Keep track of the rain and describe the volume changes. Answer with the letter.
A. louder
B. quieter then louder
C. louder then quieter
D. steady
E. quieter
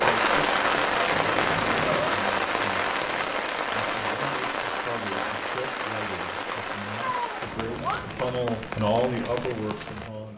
E.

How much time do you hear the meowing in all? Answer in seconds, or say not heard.
2 s.